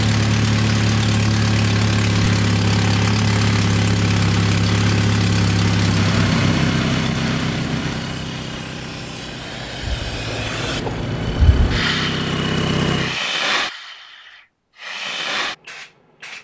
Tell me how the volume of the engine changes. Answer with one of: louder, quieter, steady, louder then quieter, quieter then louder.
quieter then louder.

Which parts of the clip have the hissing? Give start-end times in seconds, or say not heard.
0.0-16.3.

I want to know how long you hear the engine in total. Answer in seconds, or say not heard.
13 s.